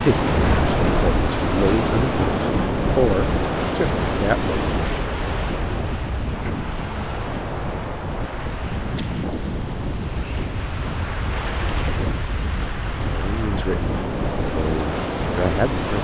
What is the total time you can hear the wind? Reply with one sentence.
You can hear the wind for 16 seconds altogether.